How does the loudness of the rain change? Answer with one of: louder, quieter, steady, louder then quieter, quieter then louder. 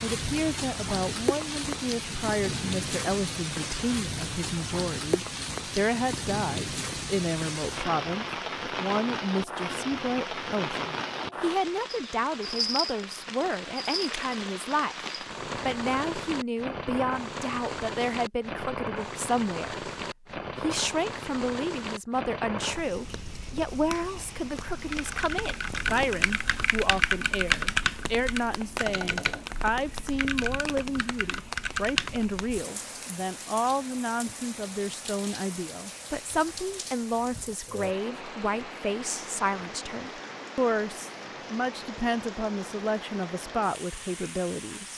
quieter.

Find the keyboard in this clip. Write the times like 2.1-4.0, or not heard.
24.6-32.2.